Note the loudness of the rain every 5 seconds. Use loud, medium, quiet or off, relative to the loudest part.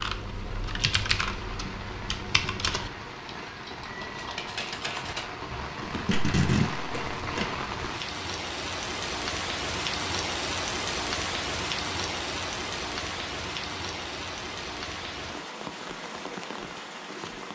medium, loud, loud, medium.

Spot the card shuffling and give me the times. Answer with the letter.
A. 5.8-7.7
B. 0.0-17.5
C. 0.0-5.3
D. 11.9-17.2
A.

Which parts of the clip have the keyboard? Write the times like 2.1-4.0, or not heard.
0.0-5.3.